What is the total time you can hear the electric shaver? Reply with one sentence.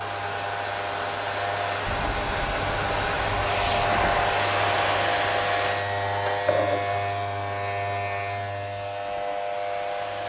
You can hear the electric shaver for 10 seconds altogether.